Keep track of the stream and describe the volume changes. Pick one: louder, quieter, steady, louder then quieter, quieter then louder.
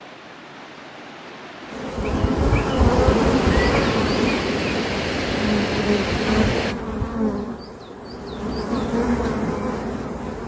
louder.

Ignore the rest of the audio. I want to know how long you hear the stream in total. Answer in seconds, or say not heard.
7 s.